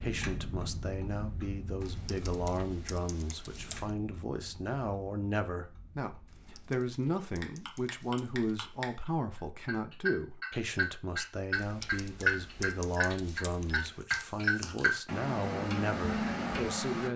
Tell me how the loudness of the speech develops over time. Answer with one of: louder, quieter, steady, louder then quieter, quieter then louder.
steady.